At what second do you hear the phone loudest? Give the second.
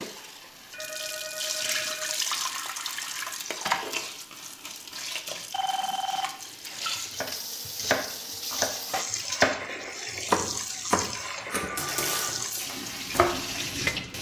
6 s.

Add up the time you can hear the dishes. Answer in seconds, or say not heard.
not heard.